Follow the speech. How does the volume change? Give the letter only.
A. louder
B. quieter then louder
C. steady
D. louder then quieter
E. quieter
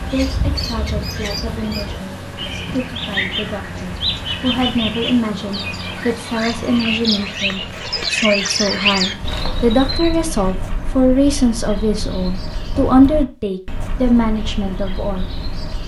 A.